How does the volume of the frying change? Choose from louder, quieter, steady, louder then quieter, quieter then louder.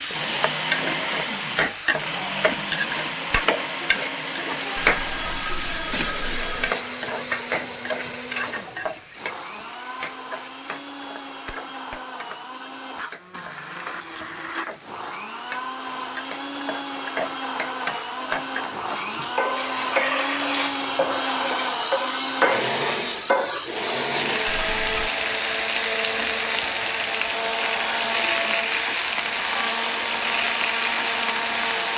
quieter then louder.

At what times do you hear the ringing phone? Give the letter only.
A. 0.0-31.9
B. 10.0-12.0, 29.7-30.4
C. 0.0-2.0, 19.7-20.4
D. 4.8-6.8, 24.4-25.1
D.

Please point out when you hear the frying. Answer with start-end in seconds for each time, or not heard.
0.0-31.9.